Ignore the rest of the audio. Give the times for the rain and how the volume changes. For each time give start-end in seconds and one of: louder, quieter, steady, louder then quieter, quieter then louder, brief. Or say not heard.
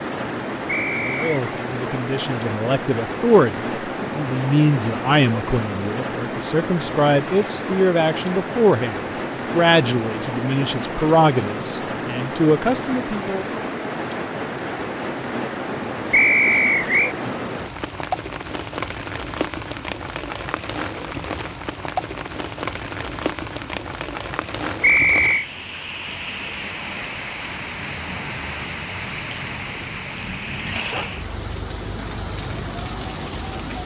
0.0-33.8 steady.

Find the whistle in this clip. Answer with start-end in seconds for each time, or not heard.
0.7-1.3, 16.1-17.1, 24.8-25.4.